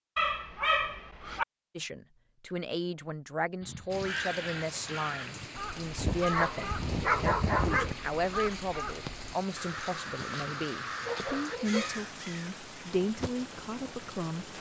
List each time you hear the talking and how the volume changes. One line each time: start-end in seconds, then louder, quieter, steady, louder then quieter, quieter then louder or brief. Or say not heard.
1.8-14.5 steady.